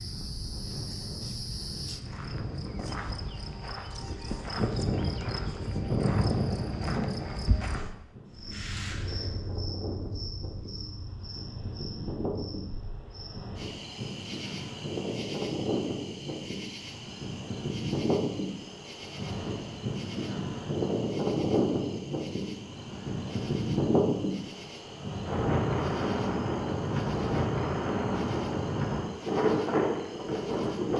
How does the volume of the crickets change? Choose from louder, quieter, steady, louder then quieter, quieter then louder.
quieter.